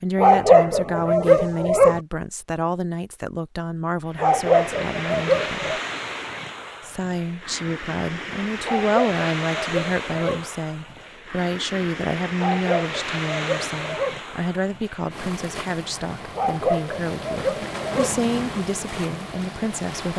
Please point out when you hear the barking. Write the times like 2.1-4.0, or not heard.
0.1-2.0, 4.2-5.8, 8.6-10.4, 12.3-14.2, 16.4-18.1.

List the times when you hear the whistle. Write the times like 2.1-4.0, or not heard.
not heard.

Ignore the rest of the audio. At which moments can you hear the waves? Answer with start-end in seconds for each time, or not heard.
4.0-20.1.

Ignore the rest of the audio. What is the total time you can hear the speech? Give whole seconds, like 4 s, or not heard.
19 s.